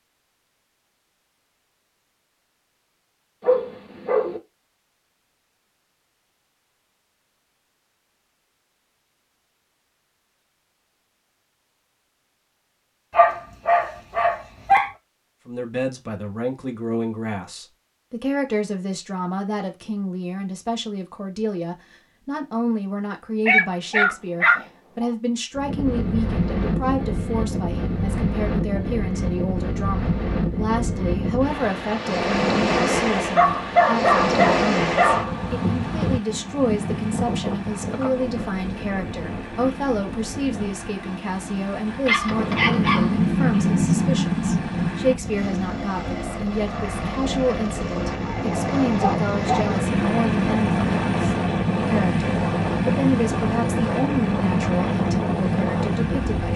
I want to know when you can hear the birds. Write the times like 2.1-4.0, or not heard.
not heard.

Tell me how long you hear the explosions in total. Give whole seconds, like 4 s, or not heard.
3 s.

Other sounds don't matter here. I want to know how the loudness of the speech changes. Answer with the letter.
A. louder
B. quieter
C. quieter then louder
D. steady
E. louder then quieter
D.